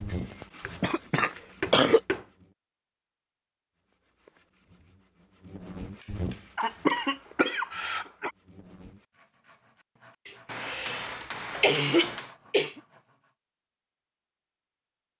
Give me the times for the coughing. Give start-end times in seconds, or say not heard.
0.1-2.0, 6.5-8.3, 10.2-12.8.